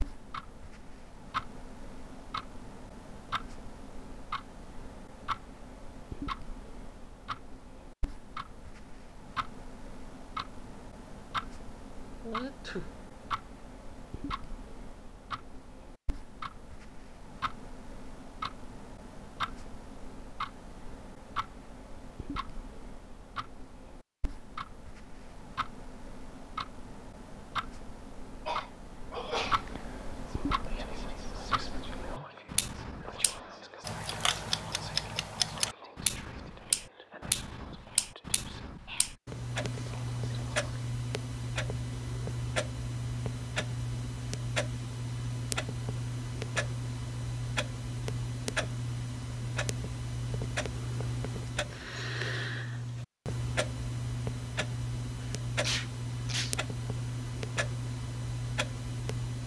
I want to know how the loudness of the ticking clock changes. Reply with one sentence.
The volume of the ticking clock goes up.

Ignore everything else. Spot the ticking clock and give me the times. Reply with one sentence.
The ticking clock can be heard from 0.0 to 59.4 s.